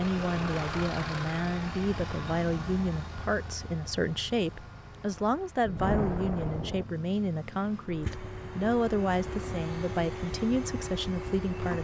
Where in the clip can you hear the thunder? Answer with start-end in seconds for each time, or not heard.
5.7-6.8.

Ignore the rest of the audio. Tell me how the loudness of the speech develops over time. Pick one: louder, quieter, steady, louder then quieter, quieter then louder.
steady.